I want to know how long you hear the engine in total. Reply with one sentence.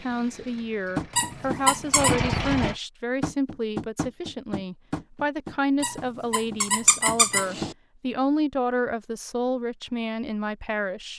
The engine can be heard for 3 seconds in total.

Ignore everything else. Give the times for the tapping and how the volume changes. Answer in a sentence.
The tapping can be heard from 0.9 to 7.8 s, getting quieter.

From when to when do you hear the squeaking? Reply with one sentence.
The squeaking can be heard from 1.1 to 2.1 s and from 5.8 to 7.8 s.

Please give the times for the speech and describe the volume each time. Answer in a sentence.
You can hear the speech from 0.0 to 11.1 s, at a steady volume.